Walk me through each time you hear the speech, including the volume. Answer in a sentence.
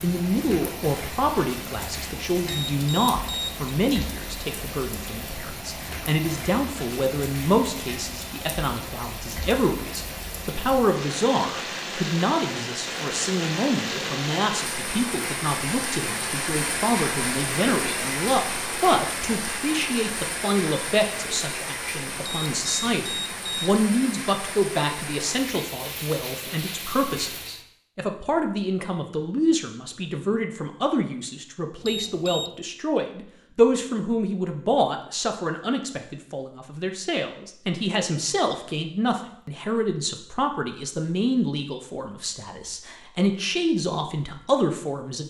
The speech can be heard from 0.0 to 45.2 s, at a steady volume.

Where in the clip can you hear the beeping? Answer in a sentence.
You can hear the beeping from 2.5 to 3.8 s, from 22.2 to 23.8 s and from 31.8 to 32.5 s.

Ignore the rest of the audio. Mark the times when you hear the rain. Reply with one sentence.
The rain can be heard from 0.0 to 27.6 s.